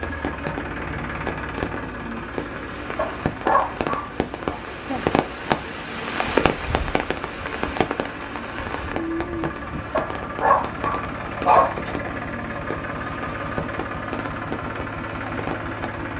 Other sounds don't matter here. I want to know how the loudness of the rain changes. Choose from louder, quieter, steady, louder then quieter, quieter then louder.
louder then quieter.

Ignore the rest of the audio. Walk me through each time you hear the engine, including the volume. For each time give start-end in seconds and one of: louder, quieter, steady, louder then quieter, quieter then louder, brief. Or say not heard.
0.0-16.1 quieter then louder.